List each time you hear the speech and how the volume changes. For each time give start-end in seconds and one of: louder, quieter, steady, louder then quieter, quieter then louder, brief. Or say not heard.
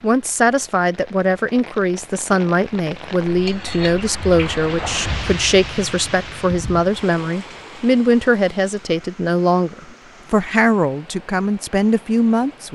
0.0-12.7 steady.